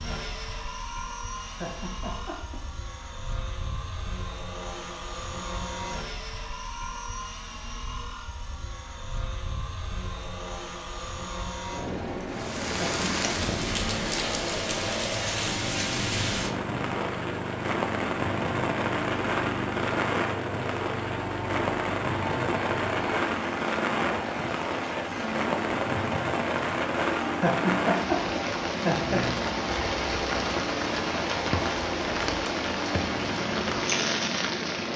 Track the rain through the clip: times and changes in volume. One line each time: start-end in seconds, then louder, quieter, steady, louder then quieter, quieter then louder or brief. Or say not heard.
12.3-34.9 steady.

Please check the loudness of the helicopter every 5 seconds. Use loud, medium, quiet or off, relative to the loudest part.
medium, medium, loud, loud, loud, loud, loud.